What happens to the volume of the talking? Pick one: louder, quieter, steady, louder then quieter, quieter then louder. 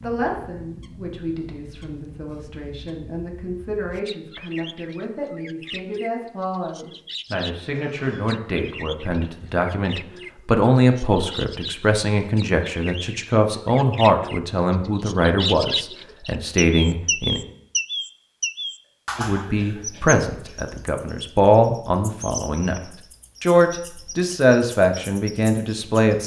louder.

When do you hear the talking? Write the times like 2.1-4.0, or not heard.
0.0-17.4, 19.1-26.2.